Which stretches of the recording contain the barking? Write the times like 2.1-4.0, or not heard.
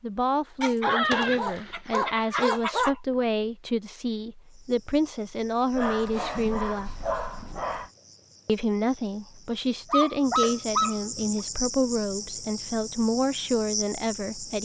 0.6-3.0, 5.7-7.9, 9.9-11.4.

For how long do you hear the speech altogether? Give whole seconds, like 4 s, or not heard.
13 s.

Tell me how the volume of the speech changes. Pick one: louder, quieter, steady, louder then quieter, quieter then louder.
steady.